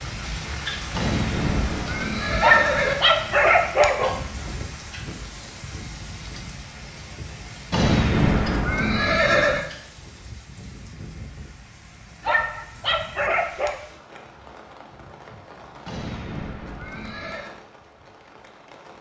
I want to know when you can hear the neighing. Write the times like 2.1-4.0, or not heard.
0.9-3.0, 7.7-9.7, 15.8-17.6.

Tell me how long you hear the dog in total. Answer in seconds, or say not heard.
3 s.